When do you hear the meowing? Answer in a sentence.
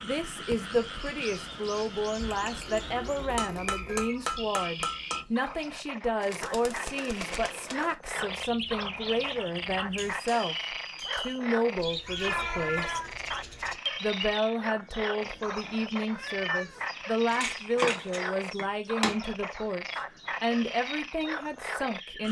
The meowing can be heard from 2.2 to 4.1 s, from 12.1 to 13.2 s and from 15.2 to 16.9 s.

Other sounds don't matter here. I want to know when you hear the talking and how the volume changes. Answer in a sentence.
The talking can be heard from 0.0 to 13.0 s, at a steady volume; and from 14.0 to 22.2 s, at a steady volume.